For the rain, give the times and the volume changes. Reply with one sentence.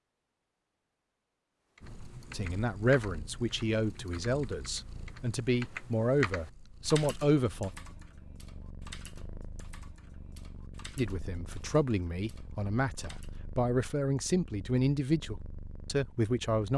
You can't hear the rain here.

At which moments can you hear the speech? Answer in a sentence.
The speech can be heard from 2.3 to 7.7 s and from 10.9 to 16.7 s.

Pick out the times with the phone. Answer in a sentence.
You can't hear the phone here.